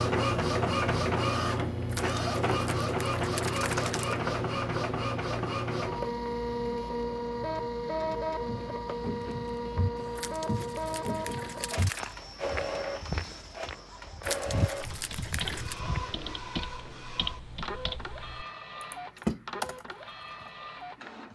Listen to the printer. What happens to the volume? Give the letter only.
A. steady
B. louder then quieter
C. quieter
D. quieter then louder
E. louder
C.